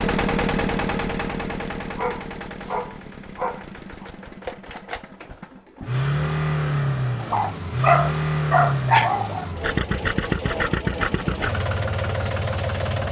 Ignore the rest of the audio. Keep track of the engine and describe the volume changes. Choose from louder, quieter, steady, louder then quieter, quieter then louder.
quieter then louder.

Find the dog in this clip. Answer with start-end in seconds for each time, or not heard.
1.8-4.0, 7.2-9.5.